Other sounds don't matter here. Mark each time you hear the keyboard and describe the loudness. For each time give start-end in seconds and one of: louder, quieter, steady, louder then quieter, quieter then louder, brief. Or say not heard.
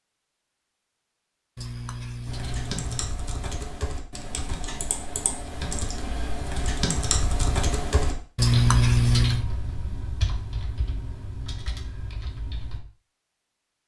2.2-12.8 louder then quieter.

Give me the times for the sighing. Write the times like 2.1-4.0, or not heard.
1.6-3.1, 8.3-9.4.